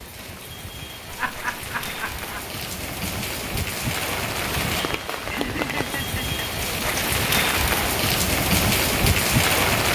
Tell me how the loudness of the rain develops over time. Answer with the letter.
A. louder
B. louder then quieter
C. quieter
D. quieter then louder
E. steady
A.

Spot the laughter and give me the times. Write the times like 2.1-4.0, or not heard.
1.1-2.4, 5.2-6.4.